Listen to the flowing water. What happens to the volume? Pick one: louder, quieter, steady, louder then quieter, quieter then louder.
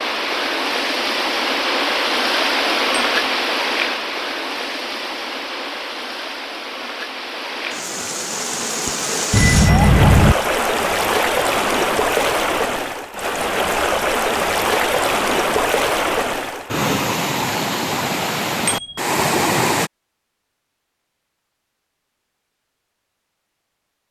quieter then louder.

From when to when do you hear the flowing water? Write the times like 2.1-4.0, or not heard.
0.0-19.9.